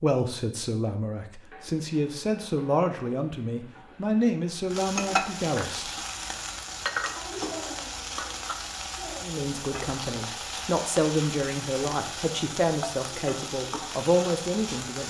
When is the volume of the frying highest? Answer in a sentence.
The loudest moment of the frying is at 5 seconds.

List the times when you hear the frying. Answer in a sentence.
You can hear the frying from 1.4 to 15.0 s.